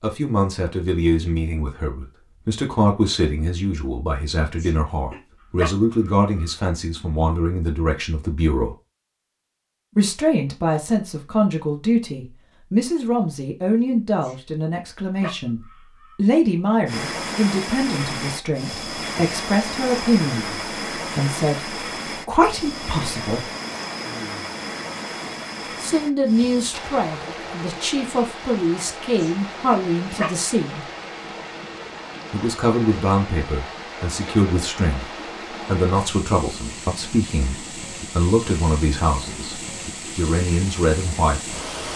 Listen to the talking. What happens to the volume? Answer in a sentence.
The volume of the talking stays about the same.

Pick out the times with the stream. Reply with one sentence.
You can hear the stream from 16.9 to 41.9 s.